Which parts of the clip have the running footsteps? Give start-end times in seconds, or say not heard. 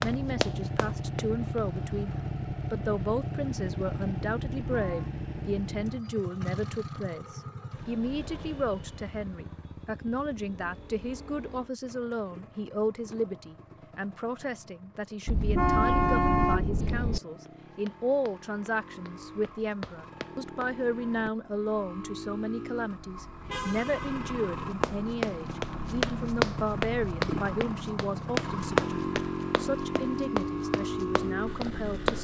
0.0-1.6, 17.4-20.8, 24.8-32.1.